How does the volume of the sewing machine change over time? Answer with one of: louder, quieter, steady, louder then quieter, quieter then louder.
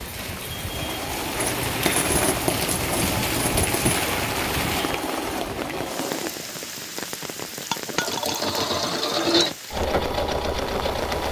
louder.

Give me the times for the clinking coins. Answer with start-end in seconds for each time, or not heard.
1.4-4.0, 7.7-8.4.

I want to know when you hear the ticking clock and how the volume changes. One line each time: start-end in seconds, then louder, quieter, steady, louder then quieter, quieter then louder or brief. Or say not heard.
not heard.